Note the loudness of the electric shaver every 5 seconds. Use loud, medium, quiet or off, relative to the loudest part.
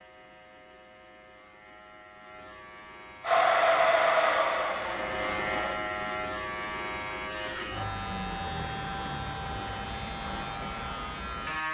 quiet, loud, loud.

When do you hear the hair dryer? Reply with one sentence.
You can hear the hair dryer from 3.2 to 5.8 s.